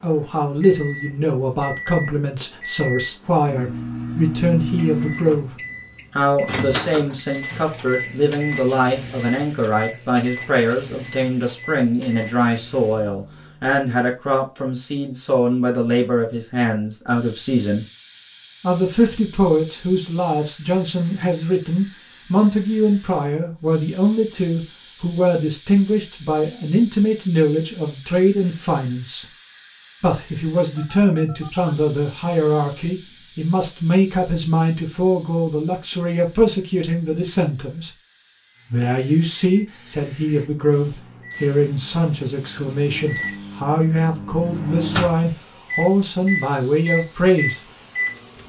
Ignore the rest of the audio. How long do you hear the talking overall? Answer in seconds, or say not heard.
45 s.